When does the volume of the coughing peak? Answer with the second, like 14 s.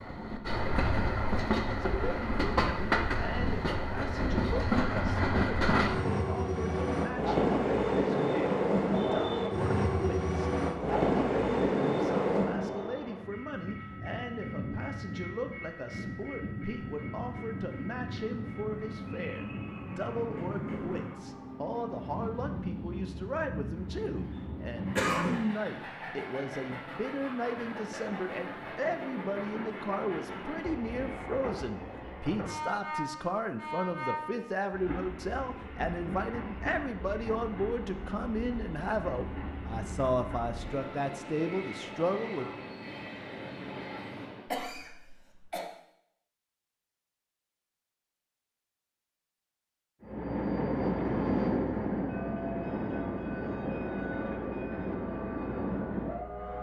25 s.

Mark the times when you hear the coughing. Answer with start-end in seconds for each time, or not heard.
24.9-25.4, 44.5-45.6.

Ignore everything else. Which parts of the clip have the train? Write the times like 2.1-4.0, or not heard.
0.0-44.5, 50.0-56.5.